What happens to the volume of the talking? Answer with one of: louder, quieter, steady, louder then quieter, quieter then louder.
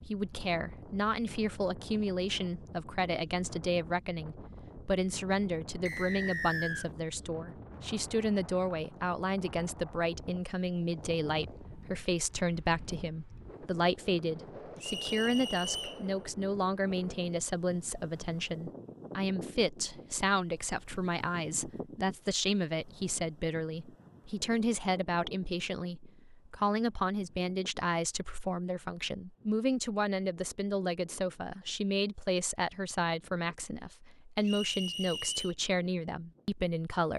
steady.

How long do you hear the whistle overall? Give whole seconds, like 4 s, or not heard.
3 s.